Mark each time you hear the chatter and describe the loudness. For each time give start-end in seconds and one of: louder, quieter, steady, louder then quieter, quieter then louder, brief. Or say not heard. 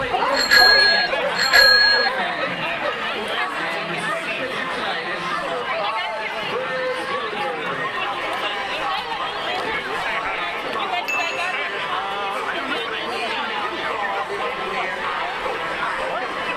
0.0-16.5 steady.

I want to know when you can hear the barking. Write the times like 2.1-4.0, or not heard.
0.0-3.0.